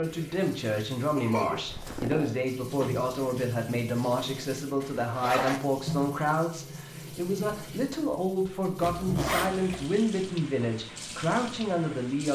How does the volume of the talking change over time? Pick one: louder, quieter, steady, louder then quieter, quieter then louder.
steady.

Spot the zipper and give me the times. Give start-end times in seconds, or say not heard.
1.6-2.4, 4.8-5.6, 8.8-9.8.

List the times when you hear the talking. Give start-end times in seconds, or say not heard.
0.0-12.2.